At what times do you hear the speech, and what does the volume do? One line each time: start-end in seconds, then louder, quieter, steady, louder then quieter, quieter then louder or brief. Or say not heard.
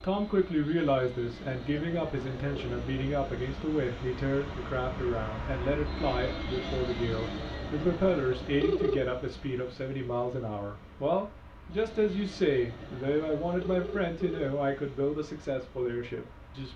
0.0-16.7 steady.